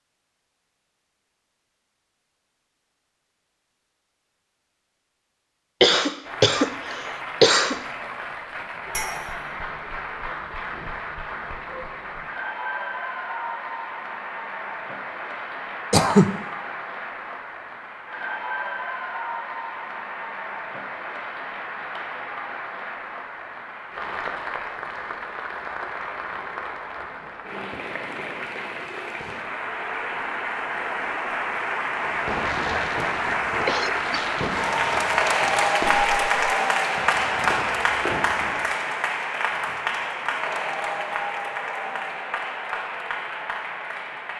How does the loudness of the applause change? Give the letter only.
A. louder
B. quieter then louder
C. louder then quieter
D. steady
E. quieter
A.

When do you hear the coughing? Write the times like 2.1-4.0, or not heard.
5.8-7.8, 15.9-16.4, 33.6-34.2.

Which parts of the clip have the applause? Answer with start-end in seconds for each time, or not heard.
6.2-44.3.